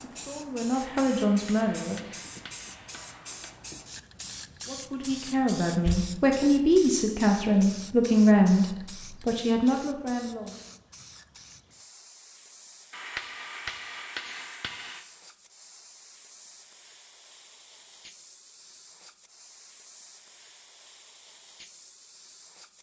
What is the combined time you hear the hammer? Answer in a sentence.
The hammer can be heard for 5 seconds in total.